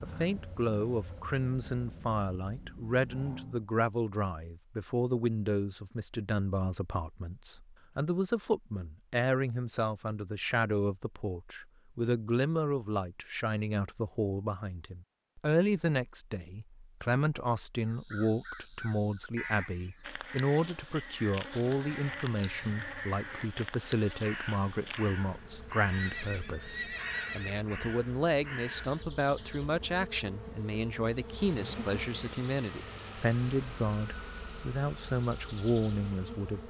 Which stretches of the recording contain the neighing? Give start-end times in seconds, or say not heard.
25.9-27.6.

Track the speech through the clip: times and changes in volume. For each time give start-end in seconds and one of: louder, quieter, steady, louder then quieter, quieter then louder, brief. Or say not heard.
0.0-36.6 steady.